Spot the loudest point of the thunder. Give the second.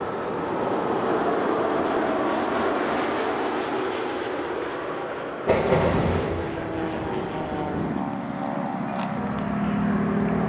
6 s.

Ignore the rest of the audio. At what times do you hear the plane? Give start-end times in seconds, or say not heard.
0.0-10.4.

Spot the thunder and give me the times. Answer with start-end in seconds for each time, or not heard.
5.5-8.0.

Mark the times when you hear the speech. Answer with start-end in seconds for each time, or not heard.
not heard.